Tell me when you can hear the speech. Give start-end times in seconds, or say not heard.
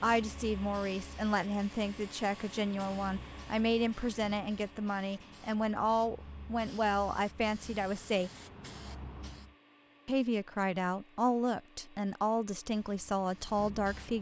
0.0-8.3, 10.1-14.1.